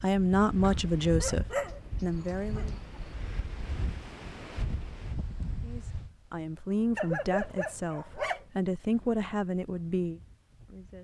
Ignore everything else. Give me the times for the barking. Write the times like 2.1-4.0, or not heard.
0.6-3.1, 7.0-8.4.